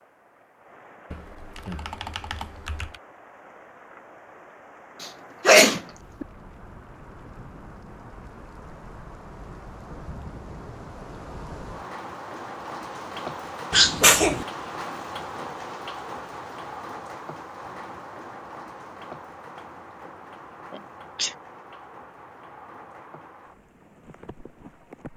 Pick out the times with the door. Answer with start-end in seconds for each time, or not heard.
not heard.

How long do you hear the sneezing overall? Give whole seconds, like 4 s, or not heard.
3 s.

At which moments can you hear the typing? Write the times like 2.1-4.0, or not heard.
1.1-3.0.